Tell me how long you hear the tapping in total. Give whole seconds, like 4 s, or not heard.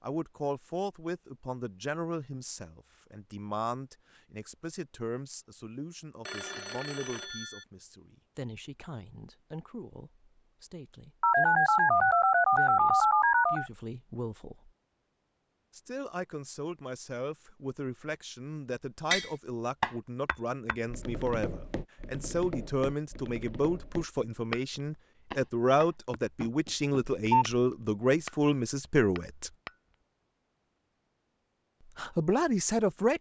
9 s.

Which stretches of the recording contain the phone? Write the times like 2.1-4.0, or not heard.
6.2-7.7, 11.2-13.7, 27.1-27.6.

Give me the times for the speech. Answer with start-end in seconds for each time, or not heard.
0.0-14.7, 15.7-29.5, 31.9-33.1.